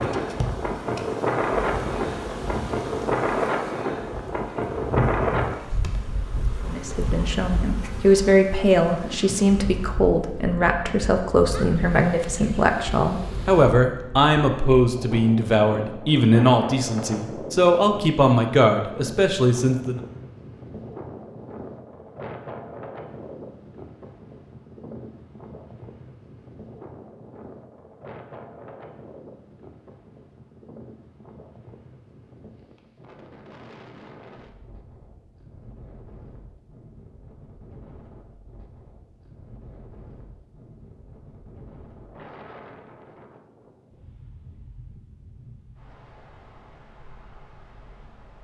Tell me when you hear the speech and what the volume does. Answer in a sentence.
The speech can be heard from 6.7 to 20.0 s, at a steady volume.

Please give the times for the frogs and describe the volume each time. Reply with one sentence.
The frogs can't be heard in this clip.